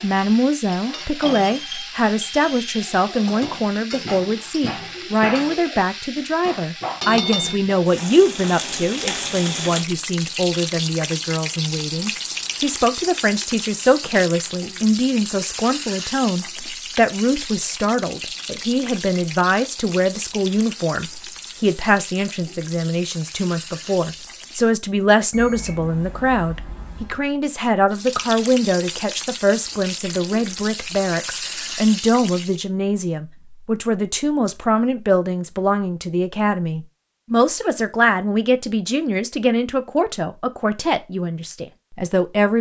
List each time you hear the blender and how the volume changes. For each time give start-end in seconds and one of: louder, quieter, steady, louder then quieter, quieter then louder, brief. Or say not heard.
not heard.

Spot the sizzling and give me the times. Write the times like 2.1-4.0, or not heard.
0.0-24.8, 27.9-32.6.